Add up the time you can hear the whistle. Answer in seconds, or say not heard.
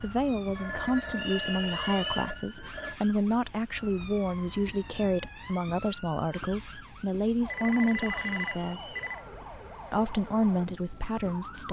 2 s.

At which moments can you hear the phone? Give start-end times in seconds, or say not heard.
0.5-3.0, 7.5-9.2.